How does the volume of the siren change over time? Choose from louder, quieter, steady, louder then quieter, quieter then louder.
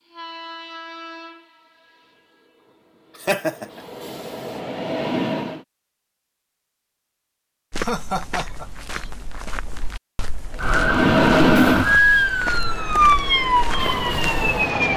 louder then quieter.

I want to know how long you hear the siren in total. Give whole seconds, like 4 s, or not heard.
4 s.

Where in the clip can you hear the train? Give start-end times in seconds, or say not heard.
0.0-5.6, 10.6-14.9.